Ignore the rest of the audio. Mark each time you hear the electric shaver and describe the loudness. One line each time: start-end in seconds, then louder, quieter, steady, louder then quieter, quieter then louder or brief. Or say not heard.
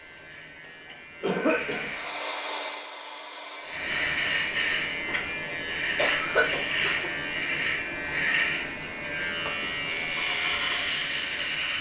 0.0-2.2 brief
3.6-11.7 steady.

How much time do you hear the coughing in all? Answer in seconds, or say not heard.
2 s.